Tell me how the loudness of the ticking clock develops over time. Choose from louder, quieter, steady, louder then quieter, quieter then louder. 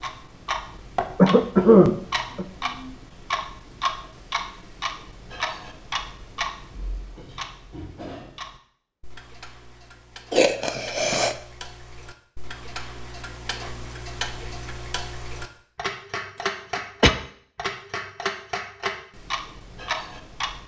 quieter then louder.